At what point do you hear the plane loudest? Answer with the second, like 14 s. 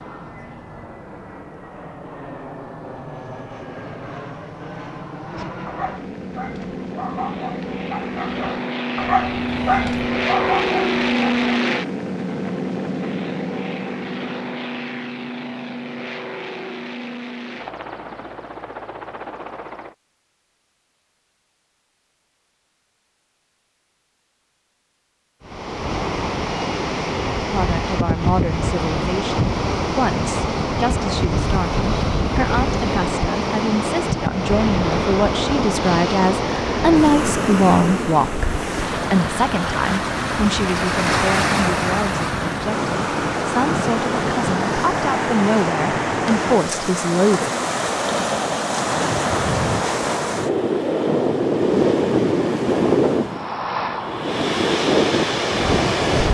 11 s.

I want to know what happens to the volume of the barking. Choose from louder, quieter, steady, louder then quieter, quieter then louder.
louder.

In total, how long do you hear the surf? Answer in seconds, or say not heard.
31 s.